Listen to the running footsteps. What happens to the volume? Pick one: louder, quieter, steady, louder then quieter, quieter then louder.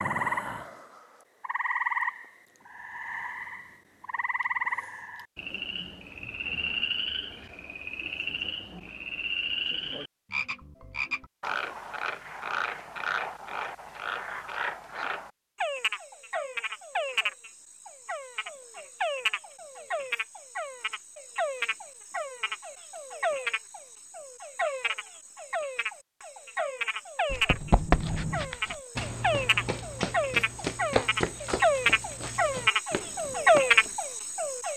quieter.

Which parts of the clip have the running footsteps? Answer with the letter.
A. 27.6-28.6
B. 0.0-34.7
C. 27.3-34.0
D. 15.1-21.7
C.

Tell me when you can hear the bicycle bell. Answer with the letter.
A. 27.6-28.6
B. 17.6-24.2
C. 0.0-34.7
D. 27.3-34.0
A.